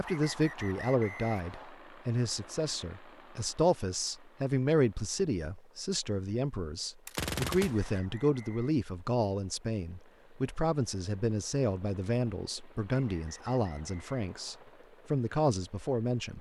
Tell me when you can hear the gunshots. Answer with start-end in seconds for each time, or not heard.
7.0-8.0.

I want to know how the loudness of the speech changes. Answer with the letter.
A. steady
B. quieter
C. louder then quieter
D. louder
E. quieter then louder
A.